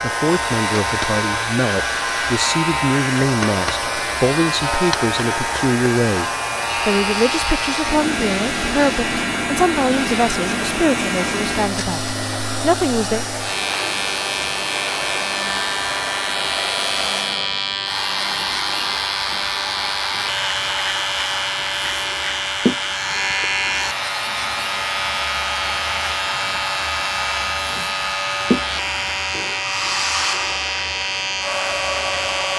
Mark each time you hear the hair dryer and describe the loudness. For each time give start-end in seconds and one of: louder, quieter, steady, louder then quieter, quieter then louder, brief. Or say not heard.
0.0-32.5 steady.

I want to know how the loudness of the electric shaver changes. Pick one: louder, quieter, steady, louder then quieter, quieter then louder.
steady.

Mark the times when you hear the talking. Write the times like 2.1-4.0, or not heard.
0.0-13.2.